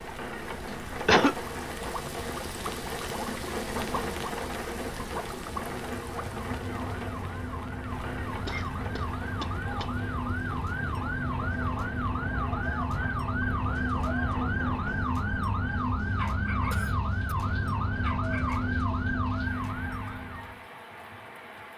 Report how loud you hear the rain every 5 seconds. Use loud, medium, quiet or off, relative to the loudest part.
loud, loud, medium, medium, medium.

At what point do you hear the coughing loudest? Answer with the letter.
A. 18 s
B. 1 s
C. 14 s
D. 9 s
B.